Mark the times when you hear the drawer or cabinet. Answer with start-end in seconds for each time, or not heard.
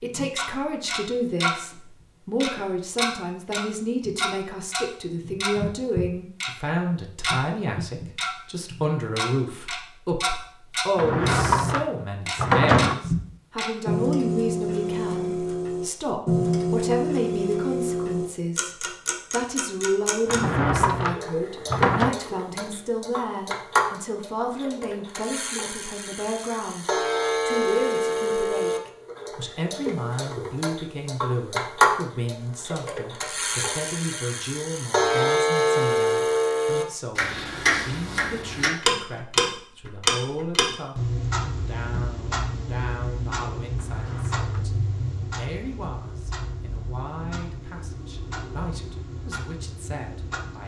10.9-12.9, 20.2-22.1, 43.8-44.6.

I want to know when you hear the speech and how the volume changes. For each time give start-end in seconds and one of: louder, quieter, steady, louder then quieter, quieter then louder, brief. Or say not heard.
0.0-50.6 quieter.